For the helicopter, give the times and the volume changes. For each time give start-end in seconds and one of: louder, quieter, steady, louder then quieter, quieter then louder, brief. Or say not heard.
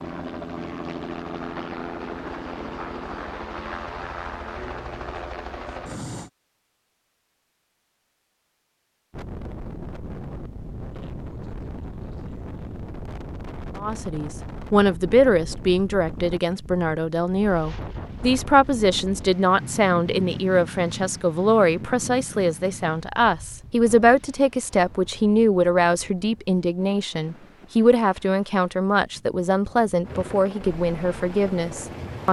0.0-6.3 steady
30.0-32.2 brief.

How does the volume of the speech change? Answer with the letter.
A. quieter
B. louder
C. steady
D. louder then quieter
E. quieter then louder
C.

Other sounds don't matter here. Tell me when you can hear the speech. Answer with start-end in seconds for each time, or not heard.
13.8-32.2.